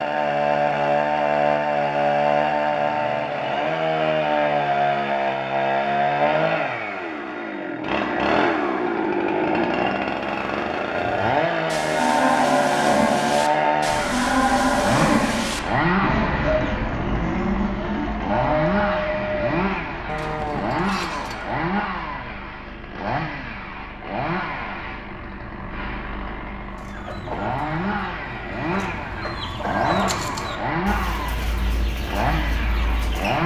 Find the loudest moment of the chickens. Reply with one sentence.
The loudest moment of the chickens is at 30 seconds.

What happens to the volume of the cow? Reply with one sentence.
The loudness of the cow goes down.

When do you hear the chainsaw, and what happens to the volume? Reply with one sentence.
The chainsaw can be heard from 0.0 to 33.4 s, getting quieter.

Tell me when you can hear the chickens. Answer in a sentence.
The chickens can be heard from 26.6 to 33.4 s.